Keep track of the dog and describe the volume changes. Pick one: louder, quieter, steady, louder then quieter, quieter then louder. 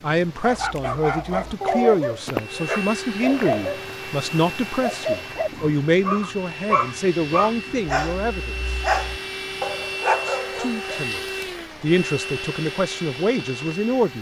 steady.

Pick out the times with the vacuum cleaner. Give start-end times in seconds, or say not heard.
2.4-14.1.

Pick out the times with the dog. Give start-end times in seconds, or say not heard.
0.4-4.0, 4.8-11.1.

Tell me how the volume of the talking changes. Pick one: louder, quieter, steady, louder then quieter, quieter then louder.
steady.